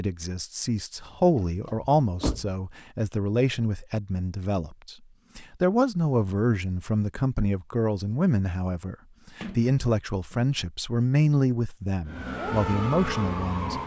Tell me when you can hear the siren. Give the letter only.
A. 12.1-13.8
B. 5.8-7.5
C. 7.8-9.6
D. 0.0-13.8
A.